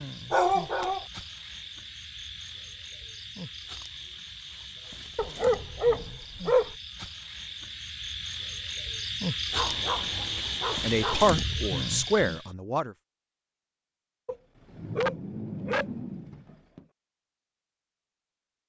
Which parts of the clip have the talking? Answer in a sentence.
You can hear the talking from 10.8 to 12.9 s.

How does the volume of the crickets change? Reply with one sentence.
The loudness of the crickets goes up.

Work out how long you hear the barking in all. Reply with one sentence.
The barking can be heard for 7 seconds in total.